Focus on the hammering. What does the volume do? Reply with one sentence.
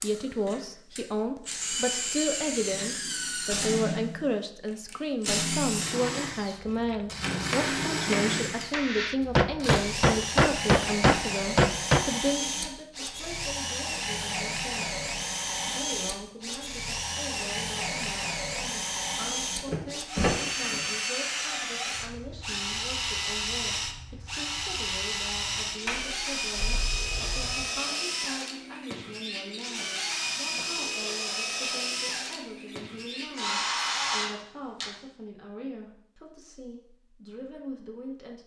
The volume of the hammering goes up.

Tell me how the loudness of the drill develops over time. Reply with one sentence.
The loudness of the drill stays about the same.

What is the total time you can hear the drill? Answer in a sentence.
The drill can be heard for 35 seconds in total.